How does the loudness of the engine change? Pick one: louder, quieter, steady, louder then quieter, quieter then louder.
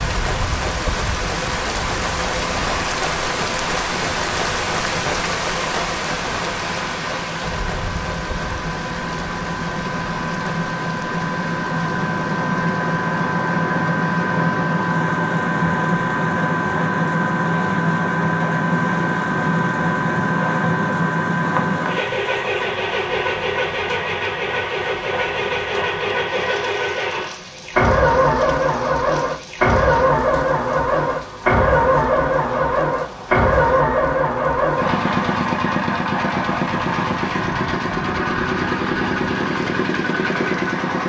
louder.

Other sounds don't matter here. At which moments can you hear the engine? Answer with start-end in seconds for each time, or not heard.
0.2-41.0.